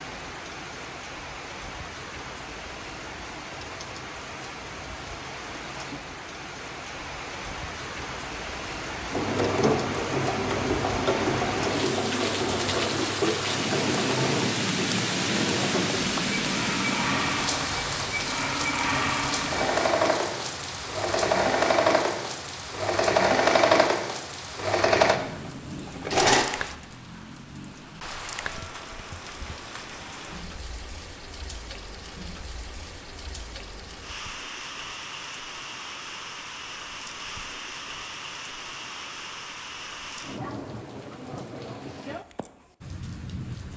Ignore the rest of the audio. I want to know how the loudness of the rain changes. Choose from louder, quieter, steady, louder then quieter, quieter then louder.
louder then quieter.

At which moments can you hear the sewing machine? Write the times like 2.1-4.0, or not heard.
9.1-26.4.